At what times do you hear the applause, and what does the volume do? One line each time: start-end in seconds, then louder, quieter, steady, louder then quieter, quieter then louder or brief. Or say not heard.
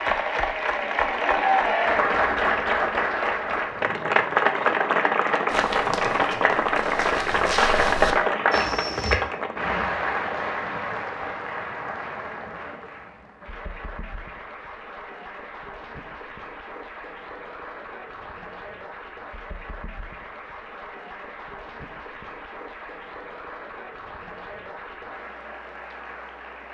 0.0-26.6 quieter.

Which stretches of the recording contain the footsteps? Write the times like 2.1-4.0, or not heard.
5.5-9.2.